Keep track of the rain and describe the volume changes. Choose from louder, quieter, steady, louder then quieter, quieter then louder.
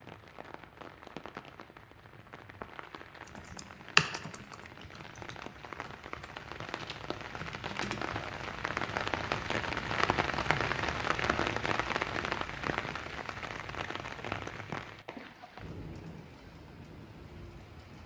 louder then quieter.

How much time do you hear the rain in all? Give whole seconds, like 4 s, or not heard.
18 s.